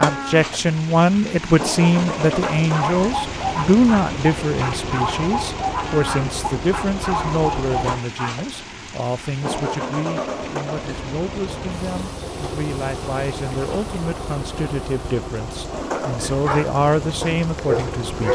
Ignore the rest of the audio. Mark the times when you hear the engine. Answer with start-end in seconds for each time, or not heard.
0.0-18.3.